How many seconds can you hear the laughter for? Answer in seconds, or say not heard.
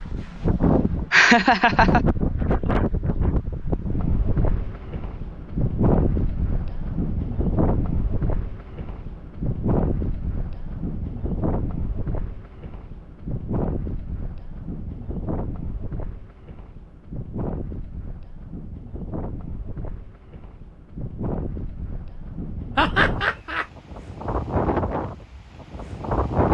2 s.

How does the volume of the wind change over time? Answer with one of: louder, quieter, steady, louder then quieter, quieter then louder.
quieter then louder.